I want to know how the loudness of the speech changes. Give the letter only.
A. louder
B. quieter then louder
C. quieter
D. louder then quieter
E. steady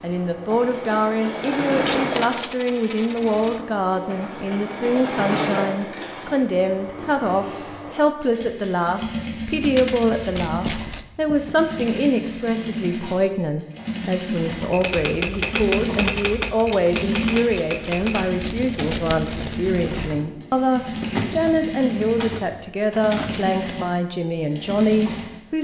E.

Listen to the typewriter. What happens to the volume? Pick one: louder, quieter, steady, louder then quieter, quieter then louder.
quieter.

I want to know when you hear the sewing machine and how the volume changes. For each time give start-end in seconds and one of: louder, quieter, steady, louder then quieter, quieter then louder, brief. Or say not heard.
0.0-25.4 steady.